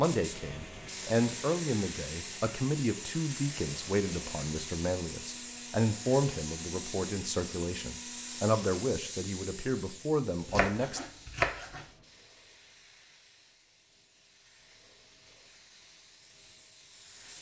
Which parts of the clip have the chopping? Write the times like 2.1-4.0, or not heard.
10.4-11.8.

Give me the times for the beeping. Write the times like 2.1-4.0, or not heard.
not heard.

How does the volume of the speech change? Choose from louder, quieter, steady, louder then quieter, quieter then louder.
steady.